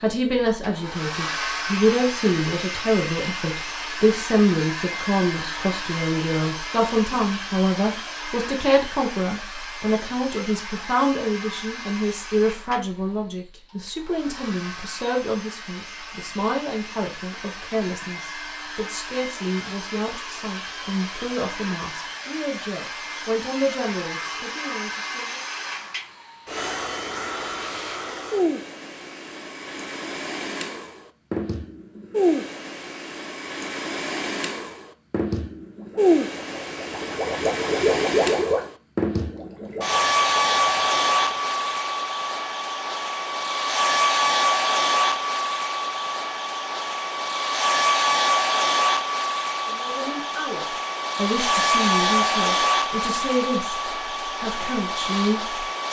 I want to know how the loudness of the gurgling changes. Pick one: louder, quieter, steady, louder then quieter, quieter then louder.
louder then quieter.